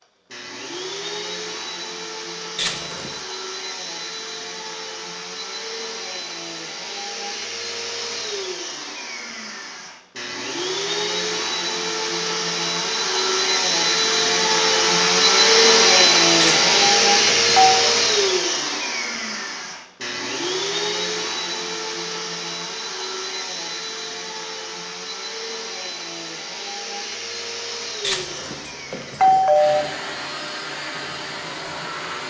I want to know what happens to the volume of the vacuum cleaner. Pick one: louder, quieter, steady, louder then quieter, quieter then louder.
louder then quieter.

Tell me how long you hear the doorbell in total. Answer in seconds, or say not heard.
4 s.